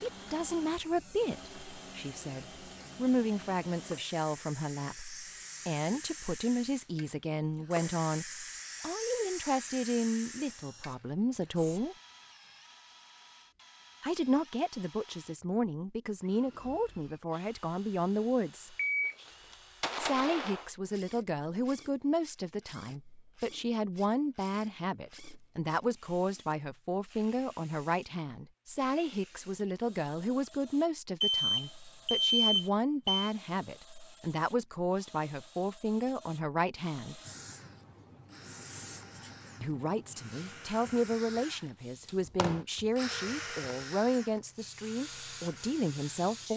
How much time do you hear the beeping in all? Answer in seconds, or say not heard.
4 s.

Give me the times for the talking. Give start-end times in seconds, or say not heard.
0.0-11.9, 14.0-18.8, 20.0-37.2, 39.6-46.5.